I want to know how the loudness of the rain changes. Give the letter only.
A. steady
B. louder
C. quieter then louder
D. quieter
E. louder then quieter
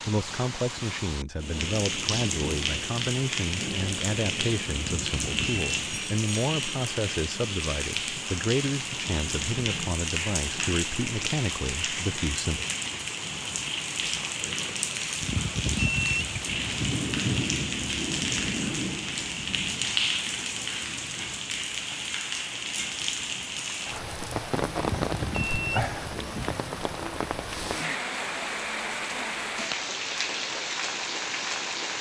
A.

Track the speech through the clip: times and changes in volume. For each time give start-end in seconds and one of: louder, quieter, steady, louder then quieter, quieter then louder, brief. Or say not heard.
0.1-12.7 steady.